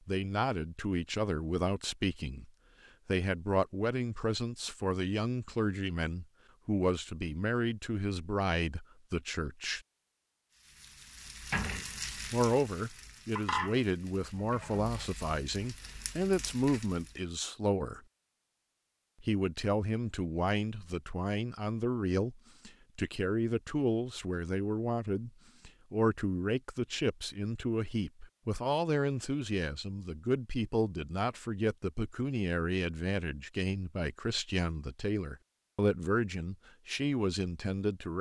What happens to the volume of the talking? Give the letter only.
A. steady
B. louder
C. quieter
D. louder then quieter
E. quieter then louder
A.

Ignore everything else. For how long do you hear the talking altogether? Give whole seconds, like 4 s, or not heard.
34 s.